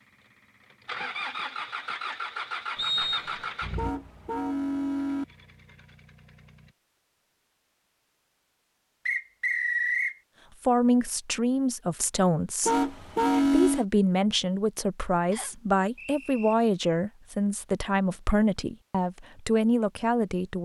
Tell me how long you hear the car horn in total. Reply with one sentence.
You can hear the car horn for 3 seconds altogether.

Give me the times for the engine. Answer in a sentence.
The engine can be heard from 0.7 to 6.8 s.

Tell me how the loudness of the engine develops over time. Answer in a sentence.
The loudness of the engine goes down.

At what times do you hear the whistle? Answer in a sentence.
The whistle can be heard from 2.8 to 3.6 s, from 9.1 to 10.2 s and from 15.3 to 16.6 s.